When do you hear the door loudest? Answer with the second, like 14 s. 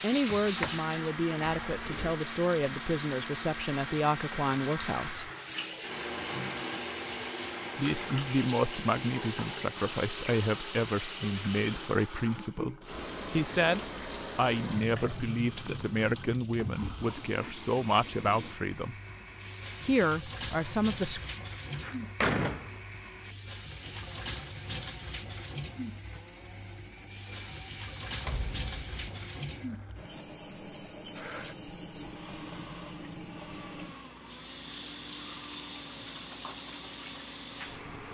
22 s.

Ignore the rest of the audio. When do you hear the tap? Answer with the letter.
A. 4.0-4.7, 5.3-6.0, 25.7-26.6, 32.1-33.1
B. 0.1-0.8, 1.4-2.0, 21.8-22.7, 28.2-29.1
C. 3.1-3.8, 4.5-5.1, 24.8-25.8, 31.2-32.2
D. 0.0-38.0
D.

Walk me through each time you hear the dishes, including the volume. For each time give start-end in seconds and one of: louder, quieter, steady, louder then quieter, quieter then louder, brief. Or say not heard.
not heard.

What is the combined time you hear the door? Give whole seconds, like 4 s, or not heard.
3 s.